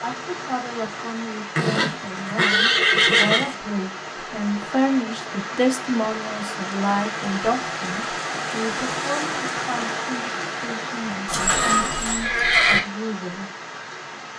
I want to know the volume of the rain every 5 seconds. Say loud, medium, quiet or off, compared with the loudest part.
medium, loud, loud.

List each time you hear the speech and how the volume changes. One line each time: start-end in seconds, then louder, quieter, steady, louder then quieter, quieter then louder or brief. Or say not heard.
0.0-13.5 louder then quieter.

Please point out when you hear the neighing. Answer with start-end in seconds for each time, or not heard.
1.6-3.5, 11.2-12.8.